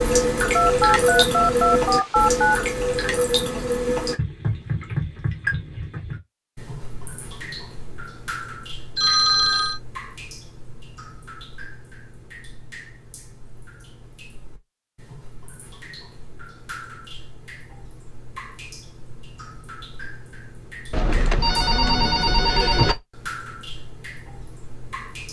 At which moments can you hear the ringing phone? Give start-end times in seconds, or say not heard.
0.5-2.6, 8.9-9.8, 20.9-22.9.